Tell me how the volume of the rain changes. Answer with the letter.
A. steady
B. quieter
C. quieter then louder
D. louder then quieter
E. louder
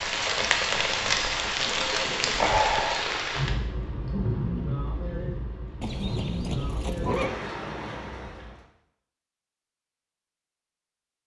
B.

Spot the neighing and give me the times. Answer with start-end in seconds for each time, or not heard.
0.3-2.6, 5.8-7.3.